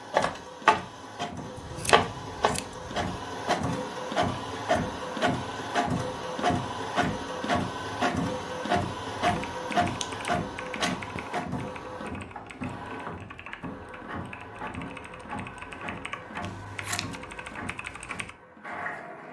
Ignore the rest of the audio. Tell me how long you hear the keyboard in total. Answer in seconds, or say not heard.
9 s.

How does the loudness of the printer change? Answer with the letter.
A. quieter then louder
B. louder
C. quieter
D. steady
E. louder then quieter
C.